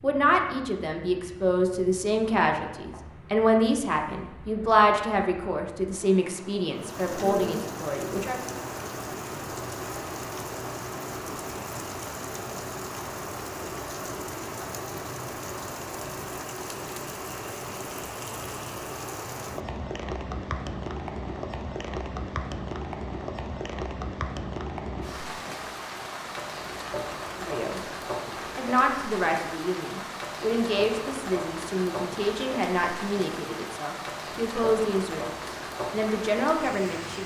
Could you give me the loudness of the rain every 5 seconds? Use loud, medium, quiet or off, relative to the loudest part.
quiet, loud, loud, loud, loud, loud, loud, loud.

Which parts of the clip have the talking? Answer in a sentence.
The talking can be heard from 0.0 to 8.4 s, from 27.4 to 27.9 s and from 28.6 to 37.2 s.